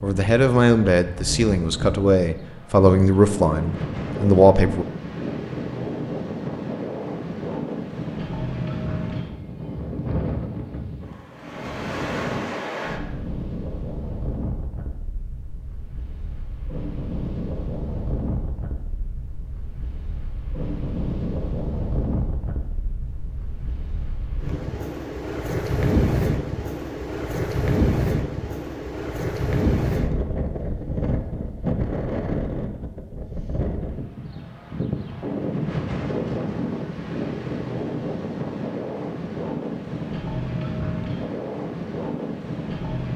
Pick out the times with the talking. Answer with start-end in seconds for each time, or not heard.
0.0-4.8.